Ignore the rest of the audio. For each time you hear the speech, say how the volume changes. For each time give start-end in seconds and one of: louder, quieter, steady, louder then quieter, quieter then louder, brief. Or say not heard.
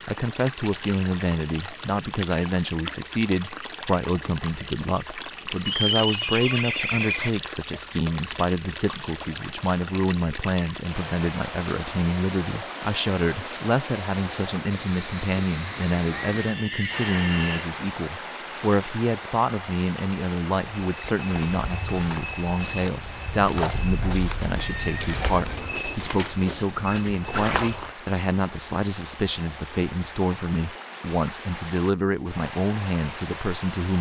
0.1-33.9 steady.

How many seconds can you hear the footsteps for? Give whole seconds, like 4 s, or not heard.
7 s.